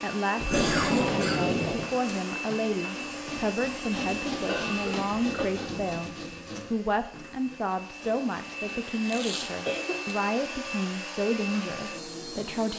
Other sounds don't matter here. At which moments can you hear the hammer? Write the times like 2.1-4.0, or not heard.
not heard.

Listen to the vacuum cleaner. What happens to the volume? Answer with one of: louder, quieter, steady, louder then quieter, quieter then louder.
quieter then louder.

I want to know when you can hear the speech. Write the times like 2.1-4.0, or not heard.
0.0-6.1, 6.7-12.7.